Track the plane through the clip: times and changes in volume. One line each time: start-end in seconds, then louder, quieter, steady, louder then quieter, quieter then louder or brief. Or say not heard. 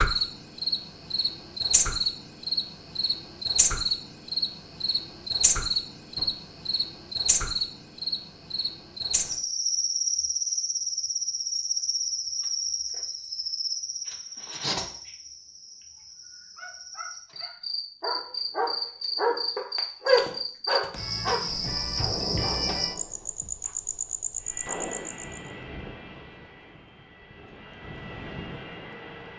24.4-29.3 quieter then louder.